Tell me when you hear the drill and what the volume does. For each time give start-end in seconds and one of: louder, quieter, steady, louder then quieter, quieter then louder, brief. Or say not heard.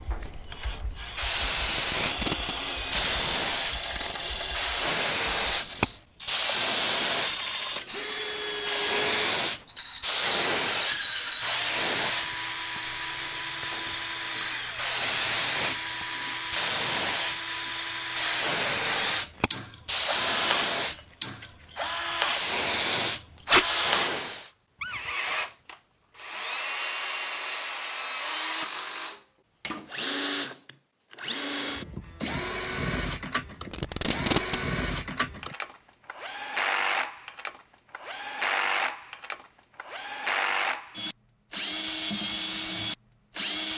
0.0-43.7 steady.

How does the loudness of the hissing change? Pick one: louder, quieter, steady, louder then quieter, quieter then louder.
steady.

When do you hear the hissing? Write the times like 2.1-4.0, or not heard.
0.1-24.5.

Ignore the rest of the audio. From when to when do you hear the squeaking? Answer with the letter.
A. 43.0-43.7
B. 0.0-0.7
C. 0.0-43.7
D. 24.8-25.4
D.